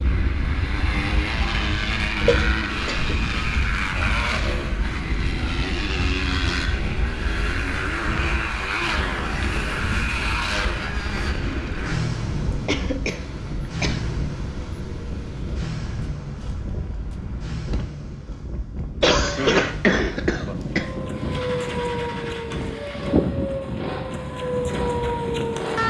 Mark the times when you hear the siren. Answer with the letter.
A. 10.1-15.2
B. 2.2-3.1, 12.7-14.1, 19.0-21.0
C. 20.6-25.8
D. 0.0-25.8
C.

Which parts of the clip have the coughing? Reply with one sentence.
You can hear the coughing from 2.2 to 3.1 s, from 12.7 to 14.1 s and from 19.0 to 21.0 s.